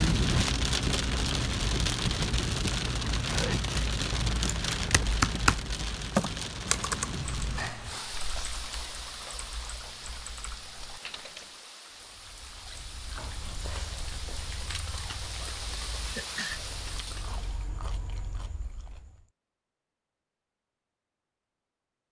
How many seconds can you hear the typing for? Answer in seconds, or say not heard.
7 s.